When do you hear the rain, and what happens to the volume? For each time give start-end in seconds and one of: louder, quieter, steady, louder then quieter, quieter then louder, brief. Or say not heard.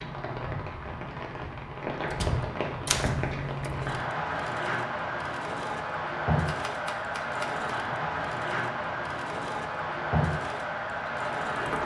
0.0-11.8 steady.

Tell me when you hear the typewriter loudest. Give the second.
3 s.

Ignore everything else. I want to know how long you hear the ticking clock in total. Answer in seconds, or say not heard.
not heard.